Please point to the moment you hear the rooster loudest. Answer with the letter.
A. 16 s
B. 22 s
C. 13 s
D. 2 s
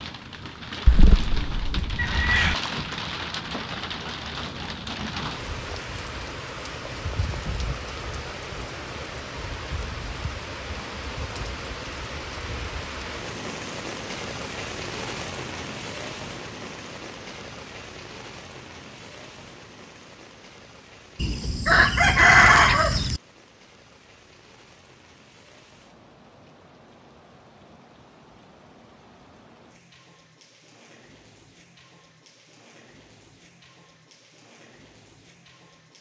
B.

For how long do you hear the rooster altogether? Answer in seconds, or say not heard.
4 s.